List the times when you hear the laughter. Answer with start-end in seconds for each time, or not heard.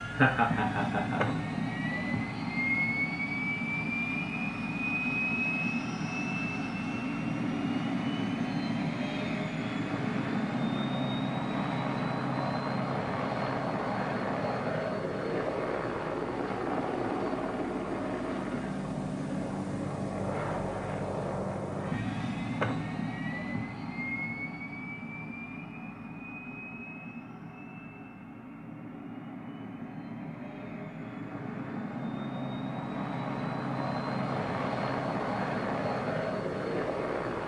0.1-1.4.